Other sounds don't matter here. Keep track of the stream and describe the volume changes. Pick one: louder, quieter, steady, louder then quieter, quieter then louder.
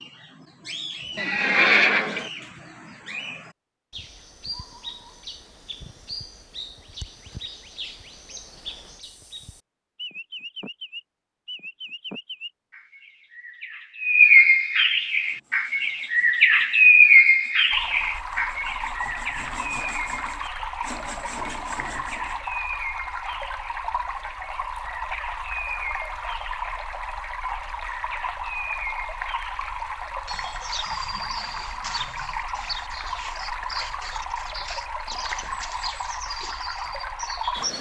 steady.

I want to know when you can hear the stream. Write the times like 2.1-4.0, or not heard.
17.7-37.7.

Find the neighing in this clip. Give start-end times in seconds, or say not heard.
1.1-2.3.